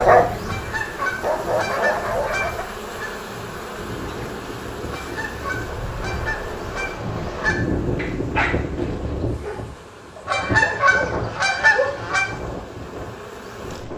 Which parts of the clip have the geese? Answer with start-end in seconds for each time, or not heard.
0.5-3.1, 4.9-7.5, 10.2-12.2.